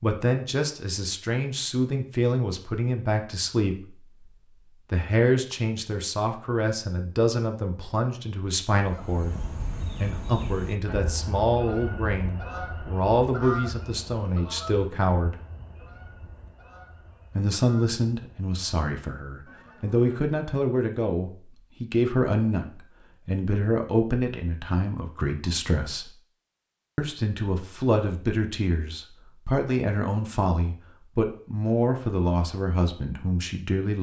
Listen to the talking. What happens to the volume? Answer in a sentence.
The volume of the talking stays about the same.